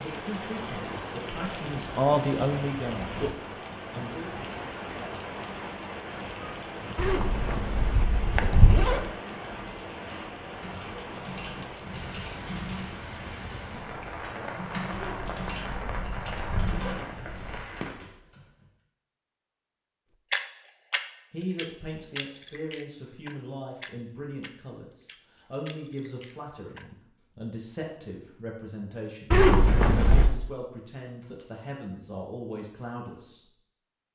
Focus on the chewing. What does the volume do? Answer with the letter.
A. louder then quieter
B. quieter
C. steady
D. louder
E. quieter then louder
B.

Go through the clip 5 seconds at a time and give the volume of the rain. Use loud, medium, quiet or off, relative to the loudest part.
loud, loud, loud, loud, off, off, off.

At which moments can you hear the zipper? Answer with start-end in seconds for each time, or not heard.
7.0-9.0, 14.9-17.6, 29.3-30.3.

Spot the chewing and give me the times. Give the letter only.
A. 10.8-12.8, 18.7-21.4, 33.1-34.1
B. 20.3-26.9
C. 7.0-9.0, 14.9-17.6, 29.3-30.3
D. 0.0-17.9
B.